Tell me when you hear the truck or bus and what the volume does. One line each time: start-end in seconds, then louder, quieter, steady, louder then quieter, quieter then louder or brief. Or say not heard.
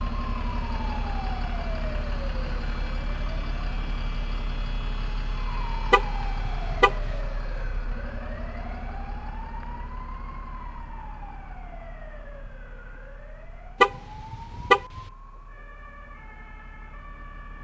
0.0-17.5 quieter.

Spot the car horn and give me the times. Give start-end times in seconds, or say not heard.
5.9-7.2, 13.8-15.0.